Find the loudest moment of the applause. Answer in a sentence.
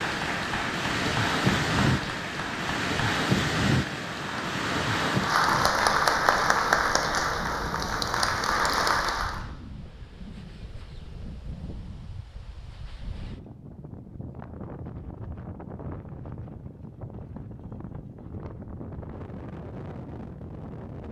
The loudest moment of the applause is at 6 seconds.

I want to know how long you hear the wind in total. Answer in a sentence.
The wind can be heard for 21 seconds in total.